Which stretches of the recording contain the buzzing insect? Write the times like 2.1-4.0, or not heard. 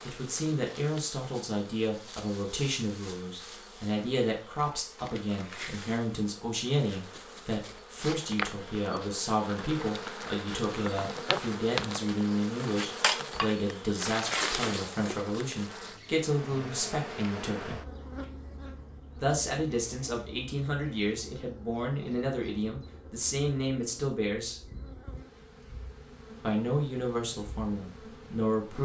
0.0-28.7.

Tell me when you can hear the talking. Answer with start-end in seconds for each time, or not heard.
0.0-17.8, 19.1-24.6, 26.4-28.7.